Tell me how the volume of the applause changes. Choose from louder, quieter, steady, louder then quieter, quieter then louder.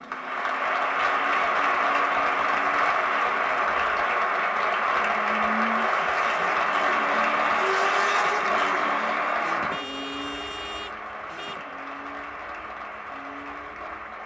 quieter.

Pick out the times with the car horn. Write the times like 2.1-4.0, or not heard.
9.7-11.6.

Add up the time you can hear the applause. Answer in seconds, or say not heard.
14 s.